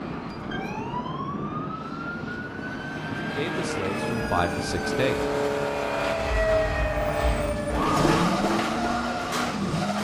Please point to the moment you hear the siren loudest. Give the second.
8 s.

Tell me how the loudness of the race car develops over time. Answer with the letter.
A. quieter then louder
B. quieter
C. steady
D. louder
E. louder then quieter
D.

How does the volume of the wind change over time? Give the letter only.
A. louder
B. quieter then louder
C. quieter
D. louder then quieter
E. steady
E.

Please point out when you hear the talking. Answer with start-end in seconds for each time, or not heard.
3.2-5.2.